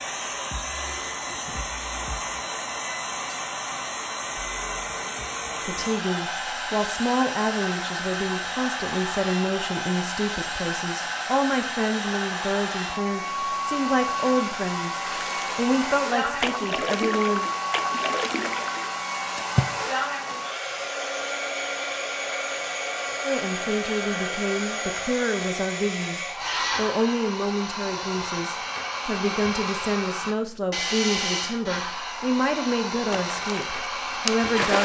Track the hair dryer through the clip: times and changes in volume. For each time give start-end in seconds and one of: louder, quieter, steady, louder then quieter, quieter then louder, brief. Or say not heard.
0.0-34.8 steady.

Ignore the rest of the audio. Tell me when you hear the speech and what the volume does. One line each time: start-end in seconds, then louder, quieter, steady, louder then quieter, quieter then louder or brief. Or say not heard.
5.7-17.5 steady
23.2-34.8 steady.